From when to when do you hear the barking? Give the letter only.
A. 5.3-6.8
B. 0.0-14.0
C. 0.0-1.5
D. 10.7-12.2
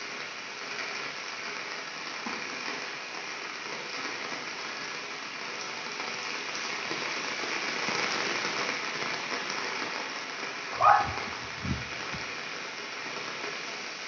D.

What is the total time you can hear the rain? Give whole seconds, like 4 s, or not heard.
14 s.